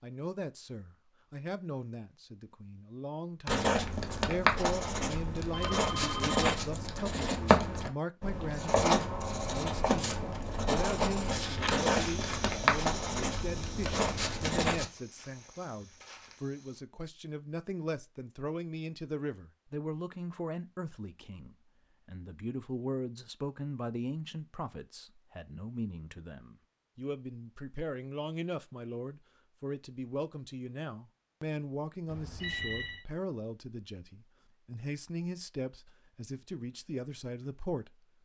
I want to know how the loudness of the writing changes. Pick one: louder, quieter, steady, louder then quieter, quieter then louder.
steady.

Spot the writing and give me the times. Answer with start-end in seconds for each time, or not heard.
3.5-14.9.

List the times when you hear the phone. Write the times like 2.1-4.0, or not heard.
5.5-6.5, 32.0-33.0.